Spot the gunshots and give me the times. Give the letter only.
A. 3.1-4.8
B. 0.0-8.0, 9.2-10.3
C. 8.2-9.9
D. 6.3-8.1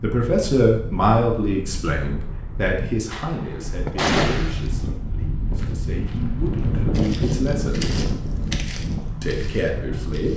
A.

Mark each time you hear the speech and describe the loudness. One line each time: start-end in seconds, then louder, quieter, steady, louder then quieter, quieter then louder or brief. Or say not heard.
0.0-8.0 quieter then louder
9.2-10.3 brief.